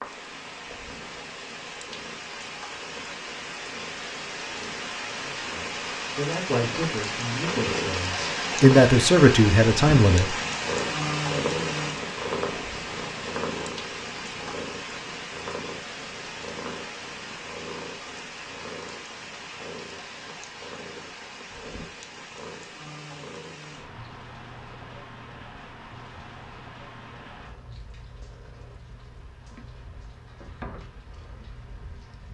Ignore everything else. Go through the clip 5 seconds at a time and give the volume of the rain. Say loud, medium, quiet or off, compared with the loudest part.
medium, loud, loud, medium, quiet, quiet, quiet.